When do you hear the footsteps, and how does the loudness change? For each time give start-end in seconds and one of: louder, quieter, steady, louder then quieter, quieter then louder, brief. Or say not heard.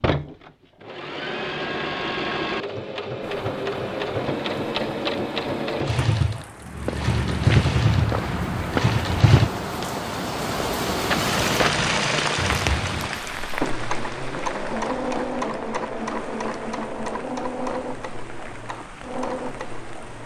6.6-13.7 quieter then louder.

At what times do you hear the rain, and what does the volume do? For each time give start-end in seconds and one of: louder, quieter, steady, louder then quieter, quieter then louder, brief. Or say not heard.
3.2-20.2 louder then quieter.